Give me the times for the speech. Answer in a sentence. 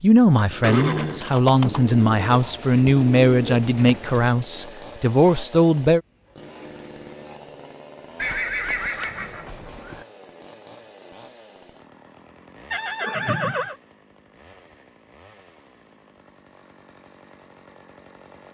The speech can be heard from 0.0 to 6.0 s.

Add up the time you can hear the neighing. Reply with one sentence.
You can hear the neighing for 4 seconds altogether.